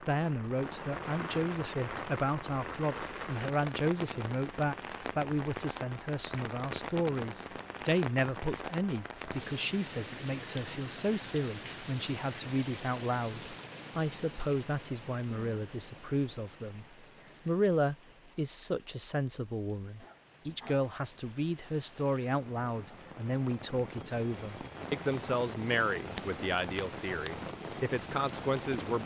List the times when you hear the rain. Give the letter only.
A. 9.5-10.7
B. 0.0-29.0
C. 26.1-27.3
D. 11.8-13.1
B.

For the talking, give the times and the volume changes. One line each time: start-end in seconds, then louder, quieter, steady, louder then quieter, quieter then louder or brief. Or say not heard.
0.0-29.0 steady.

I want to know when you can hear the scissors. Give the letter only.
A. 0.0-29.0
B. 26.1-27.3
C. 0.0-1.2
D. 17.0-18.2
B.